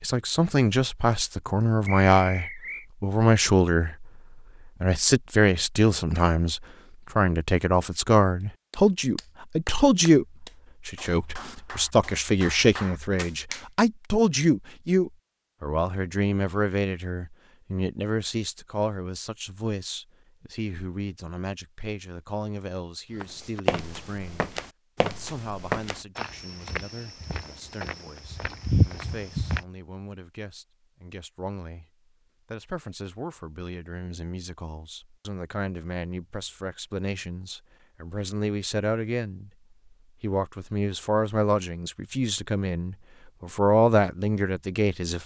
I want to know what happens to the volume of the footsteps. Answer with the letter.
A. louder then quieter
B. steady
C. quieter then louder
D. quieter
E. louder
C.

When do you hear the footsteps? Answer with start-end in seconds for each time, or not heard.
23.2-29.6.